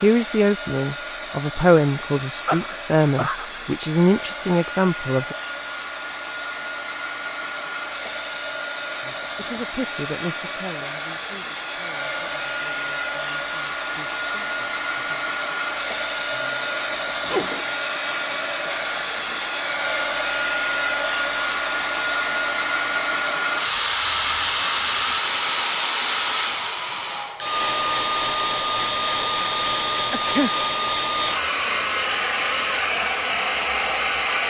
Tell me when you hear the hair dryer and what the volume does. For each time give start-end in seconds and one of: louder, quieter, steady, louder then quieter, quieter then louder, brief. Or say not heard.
0.0-34.4 louder.